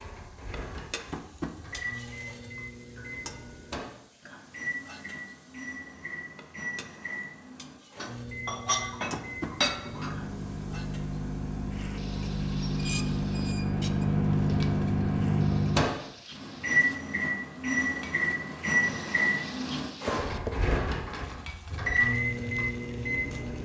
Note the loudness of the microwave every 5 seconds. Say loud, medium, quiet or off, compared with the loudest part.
quiet, quiet, loud, loud, loud.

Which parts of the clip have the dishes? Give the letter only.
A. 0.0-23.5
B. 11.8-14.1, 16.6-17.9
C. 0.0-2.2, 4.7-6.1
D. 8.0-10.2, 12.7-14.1
D.